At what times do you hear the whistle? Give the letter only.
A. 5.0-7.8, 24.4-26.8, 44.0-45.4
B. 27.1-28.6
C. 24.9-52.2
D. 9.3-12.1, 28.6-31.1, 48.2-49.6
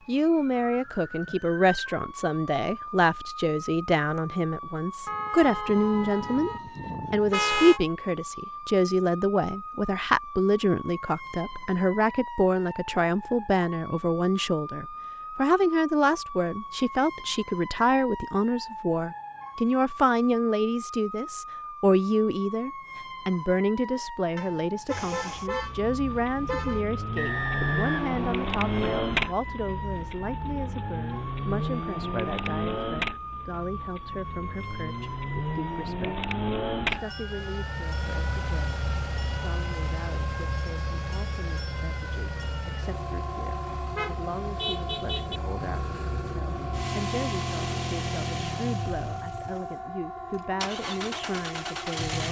B.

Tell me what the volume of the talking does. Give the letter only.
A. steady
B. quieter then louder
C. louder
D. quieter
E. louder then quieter
D.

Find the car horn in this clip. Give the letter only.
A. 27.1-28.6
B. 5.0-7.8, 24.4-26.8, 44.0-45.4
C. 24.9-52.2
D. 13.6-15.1
B.